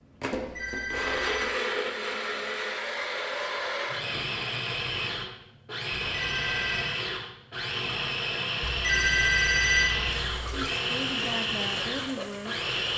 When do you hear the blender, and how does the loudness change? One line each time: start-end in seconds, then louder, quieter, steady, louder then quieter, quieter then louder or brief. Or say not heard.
0.0-12.9 steady.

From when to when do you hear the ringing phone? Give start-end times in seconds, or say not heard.
0.3-1.5, 6.2-6.9, 8.7-10.7.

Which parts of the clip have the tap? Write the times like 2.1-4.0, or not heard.
10.2-12.9.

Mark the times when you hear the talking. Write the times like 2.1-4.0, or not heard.
10.5-12.7.